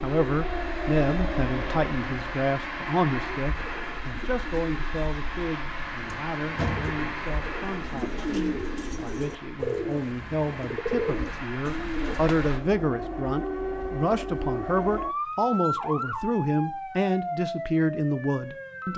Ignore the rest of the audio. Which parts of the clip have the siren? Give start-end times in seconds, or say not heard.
0.0-3.4, 12.1-18.9.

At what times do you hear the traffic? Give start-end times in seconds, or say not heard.
0.0-12.6.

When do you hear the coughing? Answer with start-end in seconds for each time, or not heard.
not heard.